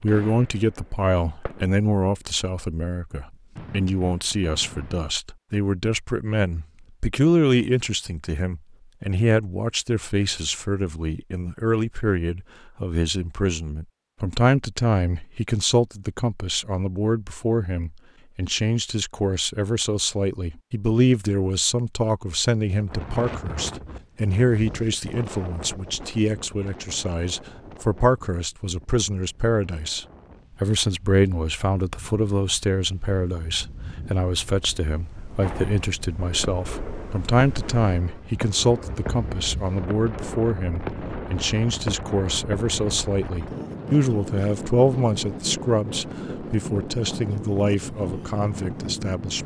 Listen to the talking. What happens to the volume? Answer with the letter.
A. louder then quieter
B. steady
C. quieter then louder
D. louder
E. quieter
B.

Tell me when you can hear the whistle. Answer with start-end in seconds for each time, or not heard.
not heard.